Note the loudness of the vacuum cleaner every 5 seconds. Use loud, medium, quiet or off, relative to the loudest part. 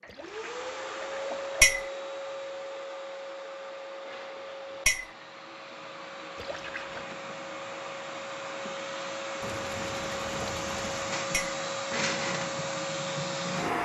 medium, medium, loud.